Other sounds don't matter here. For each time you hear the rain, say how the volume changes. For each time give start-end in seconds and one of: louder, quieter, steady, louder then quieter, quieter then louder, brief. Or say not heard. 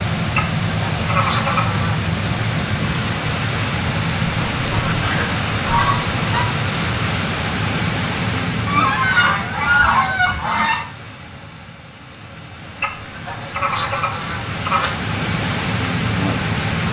0.0-16.8 quieter then louder.